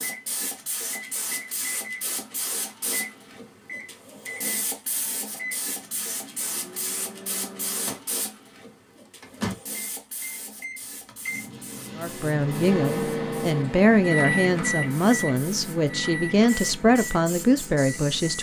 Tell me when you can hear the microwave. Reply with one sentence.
The microwave can be heard from 0.0 to 8.1 s and from 9.2 to 18.3 s.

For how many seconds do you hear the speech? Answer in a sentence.
The speech can be heard for 6 seconds in total.